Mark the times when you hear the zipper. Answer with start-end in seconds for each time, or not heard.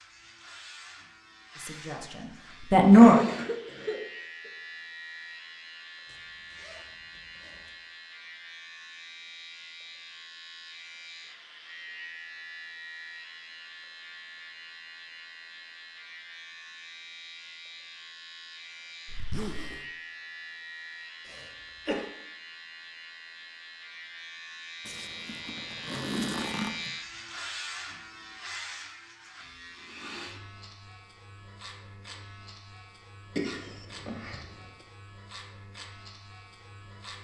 6.0-7.8, 19.1-19.9, 24.9-26.9.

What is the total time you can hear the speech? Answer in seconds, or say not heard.
2 s.